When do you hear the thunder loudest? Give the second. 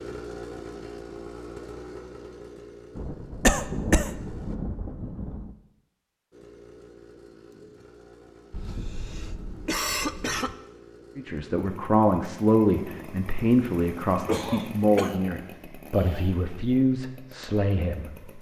4 s.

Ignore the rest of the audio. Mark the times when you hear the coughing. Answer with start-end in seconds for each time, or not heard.
3.5-4.1, 8.5-10.6, 14.2-15.2.